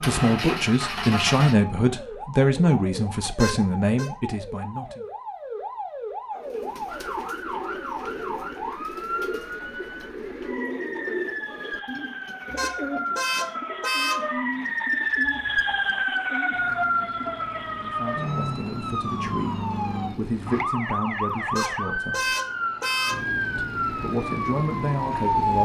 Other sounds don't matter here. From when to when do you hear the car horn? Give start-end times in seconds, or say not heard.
3.4-4.1, 12.6-14.2, 21.6-23.2.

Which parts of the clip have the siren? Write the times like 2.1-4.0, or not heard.
0.0-25.6.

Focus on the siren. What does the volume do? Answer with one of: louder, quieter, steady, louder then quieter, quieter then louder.
louder.